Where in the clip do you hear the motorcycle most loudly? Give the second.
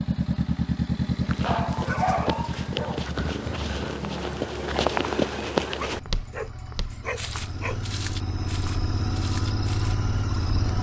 1 s.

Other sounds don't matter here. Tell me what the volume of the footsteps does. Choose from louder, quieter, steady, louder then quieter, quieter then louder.
louder then quieter.